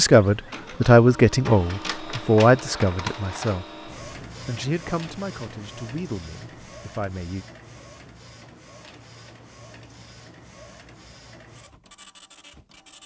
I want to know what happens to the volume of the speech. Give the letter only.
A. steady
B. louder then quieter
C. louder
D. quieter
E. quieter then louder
D.